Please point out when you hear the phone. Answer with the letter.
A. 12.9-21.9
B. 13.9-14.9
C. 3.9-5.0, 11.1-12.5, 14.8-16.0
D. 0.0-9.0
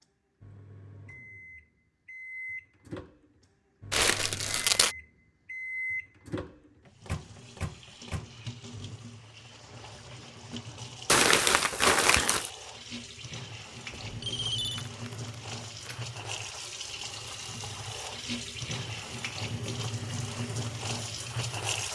B.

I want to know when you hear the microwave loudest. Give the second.
6 s.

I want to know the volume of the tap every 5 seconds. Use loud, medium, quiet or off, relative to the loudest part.
off, quiet, medium, loud, loud.